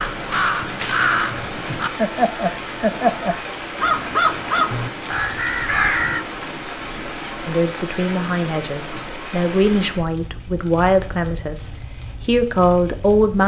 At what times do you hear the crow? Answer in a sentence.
You can hear the crow from 0.0 to 6.2 s.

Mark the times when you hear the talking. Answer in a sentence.
You can hear the talking from 7.5 to 13.4 s.